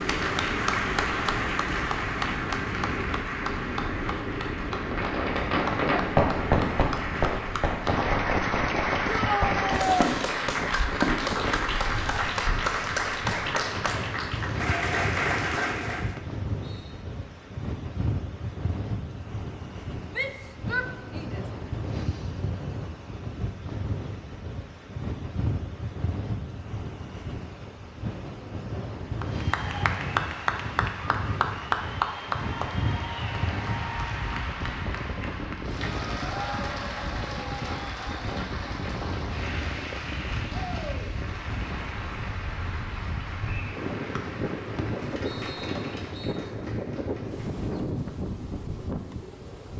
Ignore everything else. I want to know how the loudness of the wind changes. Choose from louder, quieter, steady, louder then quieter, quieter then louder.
steady.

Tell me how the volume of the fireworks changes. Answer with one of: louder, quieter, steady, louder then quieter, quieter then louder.
quieter.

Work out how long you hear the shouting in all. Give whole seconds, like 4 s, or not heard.
3 s.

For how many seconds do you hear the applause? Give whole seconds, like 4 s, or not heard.
35 s.